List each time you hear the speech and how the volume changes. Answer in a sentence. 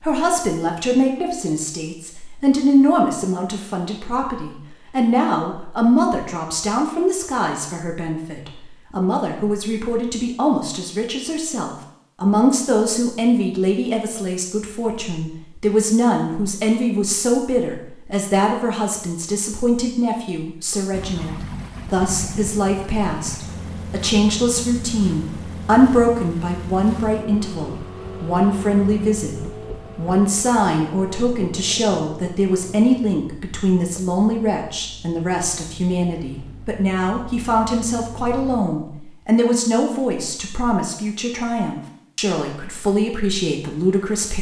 You can hear the speech from 0.0 to 44.3 s, at a steady volume.